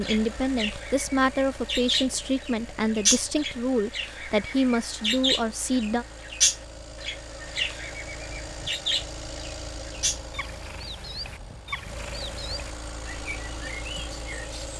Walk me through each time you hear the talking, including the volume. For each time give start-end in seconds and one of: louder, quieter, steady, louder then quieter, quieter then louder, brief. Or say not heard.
0.0-6.0 steady.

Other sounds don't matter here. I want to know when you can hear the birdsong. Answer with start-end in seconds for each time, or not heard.
0.0-14.7.